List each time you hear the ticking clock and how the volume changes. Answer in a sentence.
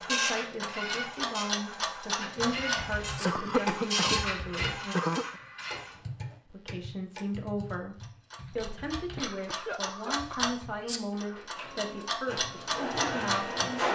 You can hear the ticking clock from 0.0 to 13.7 s, getting quieter then louder.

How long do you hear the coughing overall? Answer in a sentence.
You can hear the coughing for 4 seconds altogether.